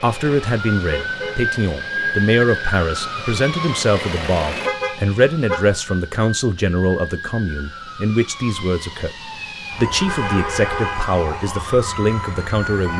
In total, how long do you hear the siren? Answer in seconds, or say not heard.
13 s.